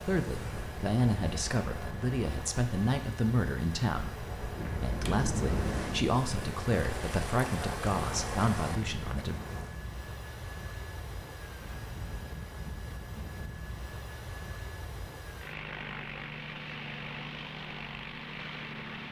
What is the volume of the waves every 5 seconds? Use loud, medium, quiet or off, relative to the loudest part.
medium, loud, off, off.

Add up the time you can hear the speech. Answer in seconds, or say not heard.
9 s.